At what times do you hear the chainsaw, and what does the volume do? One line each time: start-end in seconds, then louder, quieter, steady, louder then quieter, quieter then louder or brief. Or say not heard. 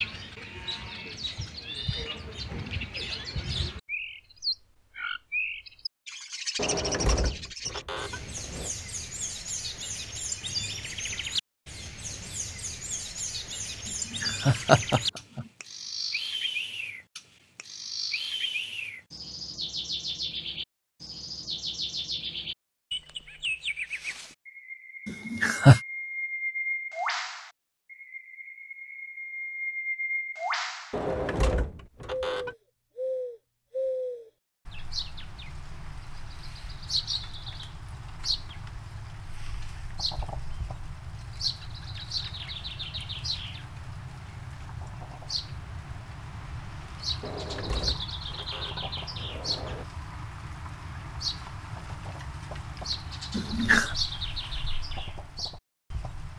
not heard.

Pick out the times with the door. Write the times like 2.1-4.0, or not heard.
6.5-8.7, 30.9-32.5, 47.2-49.9.